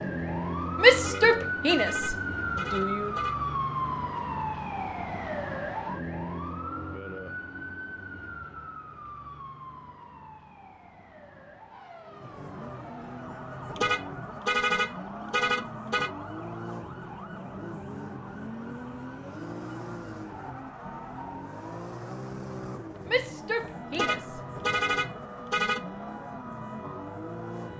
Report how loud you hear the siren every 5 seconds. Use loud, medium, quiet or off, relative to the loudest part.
loud, medium, quiet, quiet, quiet, quiet.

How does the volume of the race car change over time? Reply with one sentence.
The volume of the race car stays about the same.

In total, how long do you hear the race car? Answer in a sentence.
You can hear the race car for 16 seconds altogether.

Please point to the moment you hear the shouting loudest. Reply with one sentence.
The volume of the shouting peaks at 1 second.